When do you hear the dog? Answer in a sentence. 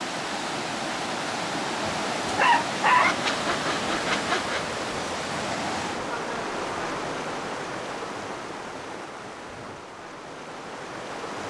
You can hear the dog from 1.8 to 3.1 s.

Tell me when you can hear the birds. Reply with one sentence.
You can't hear the birds here.